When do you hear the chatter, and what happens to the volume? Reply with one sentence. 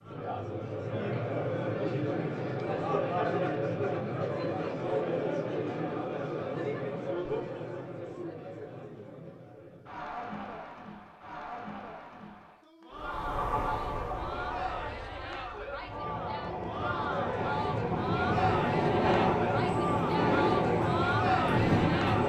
The chatter can be heard from 0.0 to 22.2 s, getting quieter then louder.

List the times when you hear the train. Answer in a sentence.
You can hear the train from 12.9 to 22.2 s.